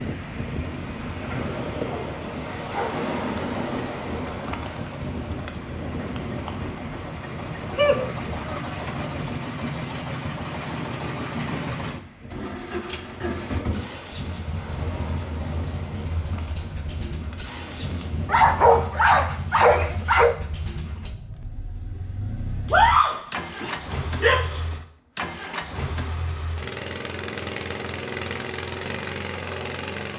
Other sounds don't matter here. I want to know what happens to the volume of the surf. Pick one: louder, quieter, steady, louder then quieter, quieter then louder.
quieter.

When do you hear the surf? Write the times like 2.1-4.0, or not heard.
0.0-18.6.